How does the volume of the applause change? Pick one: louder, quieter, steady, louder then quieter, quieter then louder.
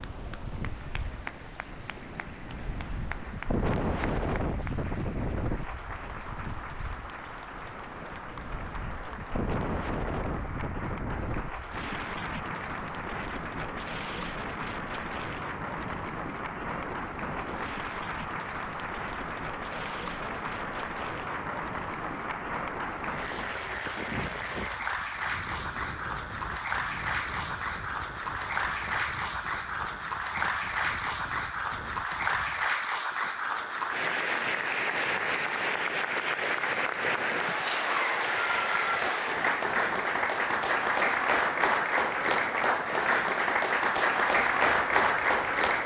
louder.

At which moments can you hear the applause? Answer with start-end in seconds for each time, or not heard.
0.0-45.8.